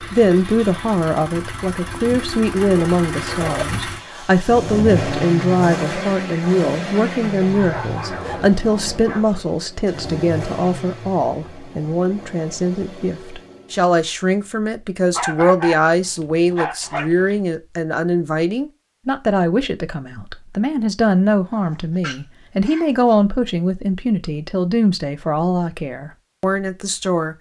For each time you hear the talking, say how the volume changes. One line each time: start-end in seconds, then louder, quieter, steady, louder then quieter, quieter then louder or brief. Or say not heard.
0.0-27.3 steady.